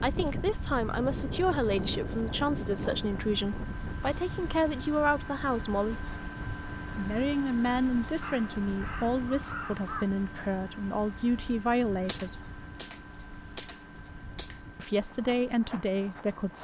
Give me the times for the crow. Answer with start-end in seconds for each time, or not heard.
8.2-10.1.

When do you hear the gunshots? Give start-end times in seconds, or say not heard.
12.1-14.6.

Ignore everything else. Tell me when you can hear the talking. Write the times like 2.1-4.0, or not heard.
0.0-6.0, 7.0-12.5, 14.8-16.5.